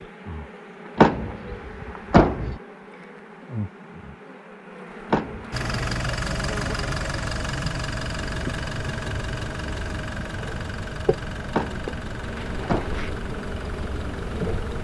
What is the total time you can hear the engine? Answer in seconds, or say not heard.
9 s.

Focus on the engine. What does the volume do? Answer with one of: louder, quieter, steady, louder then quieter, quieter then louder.
quieter.